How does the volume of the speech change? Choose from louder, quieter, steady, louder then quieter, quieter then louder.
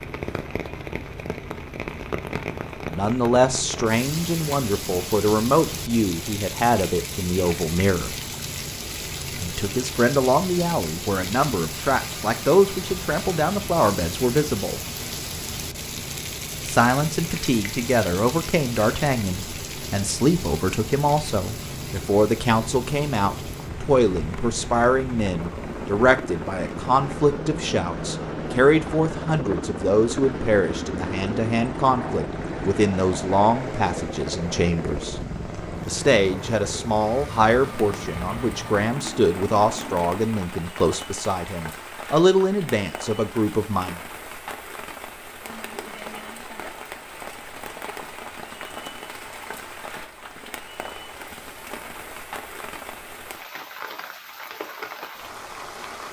steady.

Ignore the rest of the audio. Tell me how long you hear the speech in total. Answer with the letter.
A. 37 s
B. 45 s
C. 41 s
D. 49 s
A.